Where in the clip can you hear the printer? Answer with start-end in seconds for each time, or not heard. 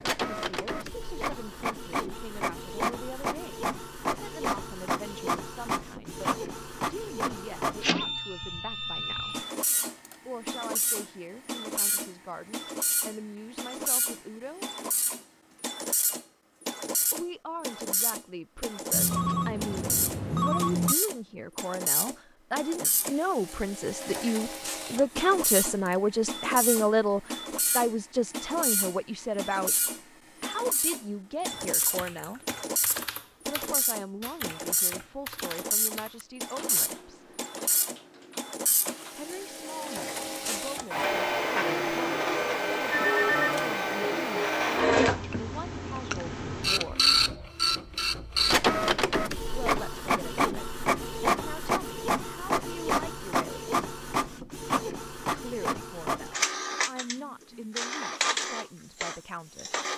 0.0-59.9.